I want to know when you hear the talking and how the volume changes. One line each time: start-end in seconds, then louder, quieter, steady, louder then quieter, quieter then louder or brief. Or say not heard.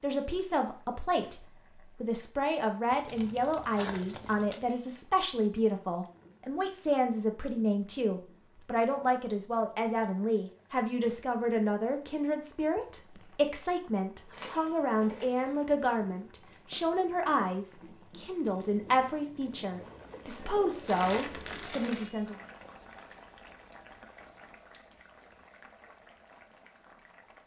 0.0-22.4 steady.